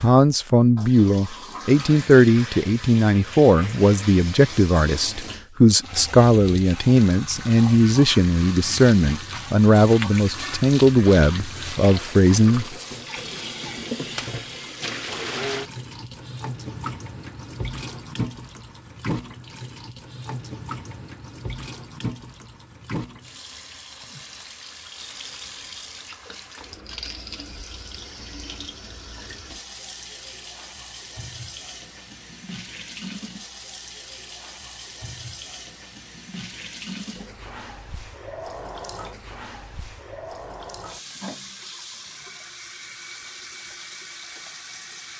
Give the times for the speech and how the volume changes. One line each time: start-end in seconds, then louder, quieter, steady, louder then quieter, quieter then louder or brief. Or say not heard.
0.0-12.7 steady.